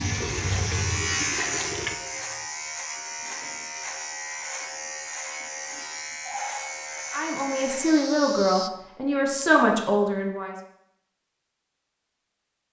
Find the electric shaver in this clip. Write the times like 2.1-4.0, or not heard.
0.0-8.7.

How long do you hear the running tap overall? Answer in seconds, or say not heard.
2 s.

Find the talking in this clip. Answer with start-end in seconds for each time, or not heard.
7.1-10.6.